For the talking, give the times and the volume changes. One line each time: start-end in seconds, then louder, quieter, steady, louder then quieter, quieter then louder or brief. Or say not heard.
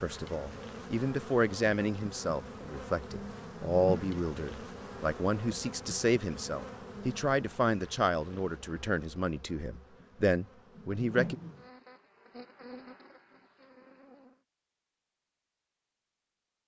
0.0-11.3 steady.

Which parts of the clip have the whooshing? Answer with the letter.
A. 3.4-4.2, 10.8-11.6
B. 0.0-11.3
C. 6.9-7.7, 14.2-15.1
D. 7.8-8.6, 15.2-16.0
A.